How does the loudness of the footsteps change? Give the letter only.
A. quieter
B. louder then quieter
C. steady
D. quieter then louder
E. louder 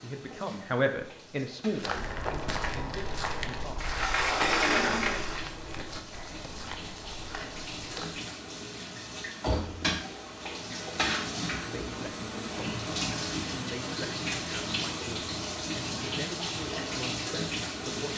A.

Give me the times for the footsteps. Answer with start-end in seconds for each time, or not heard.
1.8-8.2.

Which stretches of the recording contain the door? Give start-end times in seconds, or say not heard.
3.8-5.5.